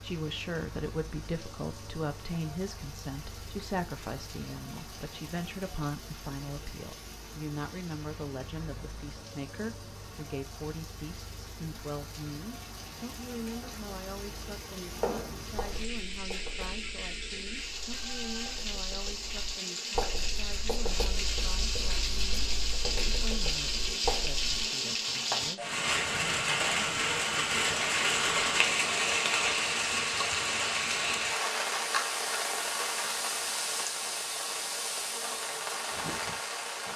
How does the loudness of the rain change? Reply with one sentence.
The loudness of the rain goes up.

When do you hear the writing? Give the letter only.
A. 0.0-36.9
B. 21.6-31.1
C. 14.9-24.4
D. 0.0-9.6
C.